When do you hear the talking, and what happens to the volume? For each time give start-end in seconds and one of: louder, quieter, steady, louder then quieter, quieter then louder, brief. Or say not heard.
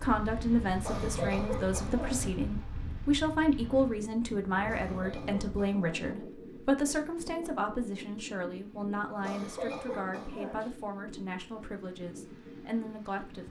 0.0-13.4 quieter.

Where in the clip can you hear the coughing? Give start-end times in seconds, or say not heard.
0.8-2.3, 4.7-6.2, 9.2-10.7.